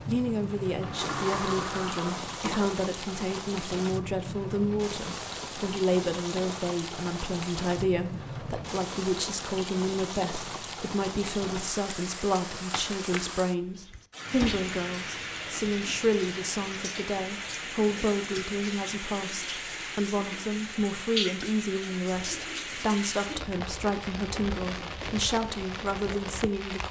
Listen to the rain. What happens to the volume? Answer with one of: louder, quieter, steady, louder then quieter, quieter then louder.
steady.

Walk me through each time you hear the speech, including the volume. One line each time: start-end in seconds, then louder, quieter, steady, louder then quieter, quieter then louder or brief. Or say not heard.
0.1-26.8 steady.